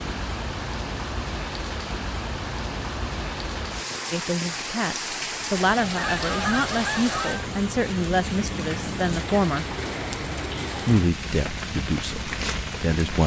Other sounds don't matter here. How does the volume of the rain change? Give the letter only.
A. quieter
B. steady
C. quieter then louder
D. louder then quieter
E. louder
B.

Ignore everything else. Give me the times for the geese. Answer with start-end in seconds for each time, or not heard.
6.0-7.5.